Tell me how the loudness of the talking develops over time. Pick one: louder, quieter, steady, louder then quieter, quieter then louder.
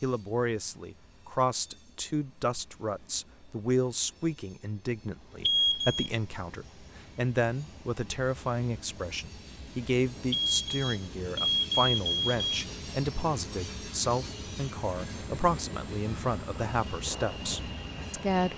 steady.